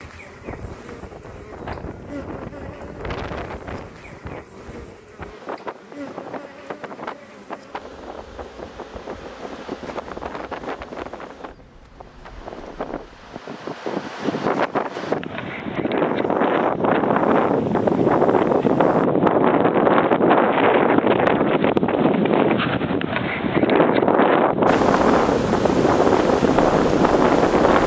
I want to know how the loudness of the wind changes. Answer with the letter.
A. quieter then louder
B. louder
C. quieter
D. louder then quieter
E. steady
B.